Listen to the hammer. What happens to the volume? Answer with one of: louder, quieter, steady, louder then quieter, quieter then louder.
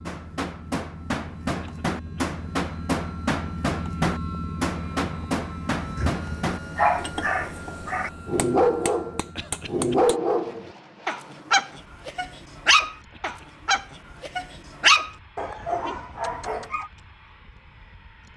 quieter.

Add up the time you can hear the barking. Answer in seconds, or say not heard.
11 s.